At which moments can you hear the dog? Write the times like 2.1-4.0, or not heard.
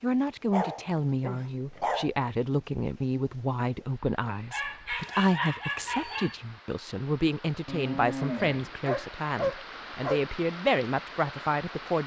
0.5-2.1, 4.5-6.3, 8.8-10.2.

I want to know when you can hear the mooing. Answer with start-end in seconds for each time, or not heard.
7.7-8.9.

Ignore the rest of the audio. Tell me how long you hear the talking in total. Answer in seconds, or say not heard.
12 s.